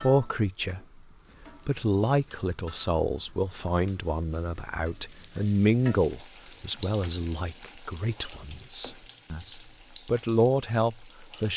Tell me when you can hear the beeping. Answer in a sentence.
The beeping can't be heard in this clip.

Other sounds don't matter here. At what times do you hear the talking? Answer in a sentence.
The talking can be heard from 0.0 to 1.0 s and from 1.6 to 11.5 s.